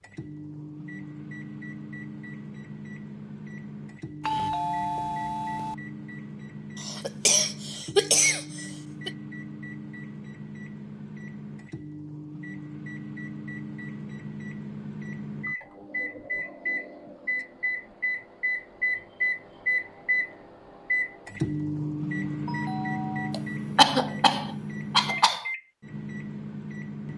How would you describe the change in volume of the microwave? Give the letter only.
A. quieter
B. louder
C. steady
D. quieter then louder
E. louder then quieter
B.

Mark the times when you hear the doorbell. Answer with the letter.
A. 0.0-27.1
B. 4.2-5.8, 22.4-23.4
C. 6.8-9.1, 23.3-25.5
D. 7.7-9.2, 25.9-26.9
B.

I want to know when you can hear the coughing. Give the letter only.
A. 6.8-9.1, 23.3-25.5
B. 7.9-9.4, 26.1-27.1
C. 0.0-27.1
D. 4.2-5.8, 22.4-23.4
A.